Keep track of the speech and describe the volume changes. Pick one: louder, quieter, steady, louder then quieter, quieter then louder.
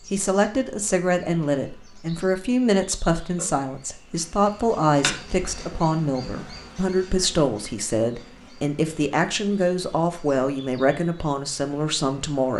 steady.